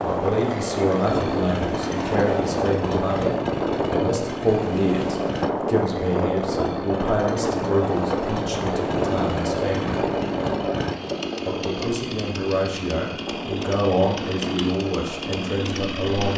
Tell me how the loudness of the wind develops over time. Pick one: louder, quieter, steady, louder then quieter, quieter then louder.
quieter.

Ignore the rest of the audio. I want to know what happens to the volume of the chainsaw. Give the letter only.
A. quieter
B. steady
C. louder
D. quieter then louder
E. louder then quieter
B.